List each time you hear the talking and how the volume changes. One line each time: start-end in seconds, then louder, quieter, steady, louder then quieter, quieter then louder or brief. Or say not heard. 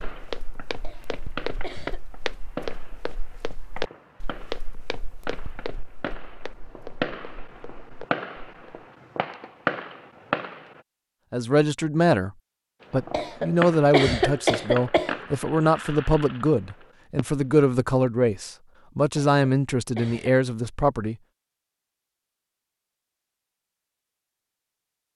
11.3-12.3 brief
12.9-21.1 steady.